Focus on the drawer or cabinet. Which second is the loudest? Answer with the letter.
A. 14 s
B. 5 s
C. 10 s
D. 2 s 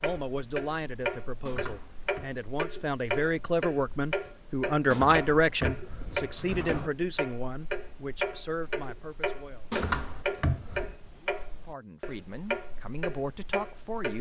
C.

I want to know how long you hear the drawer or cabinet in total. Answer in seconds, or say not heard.
4 s.